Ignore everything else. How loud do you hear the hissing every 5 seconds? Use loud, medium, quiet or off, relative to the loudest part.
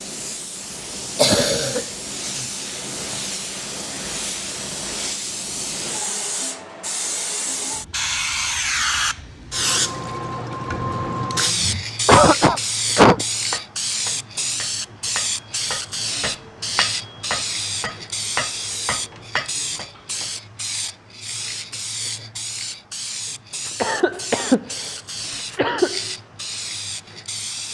medium, loud, loud, loud, medium, medium.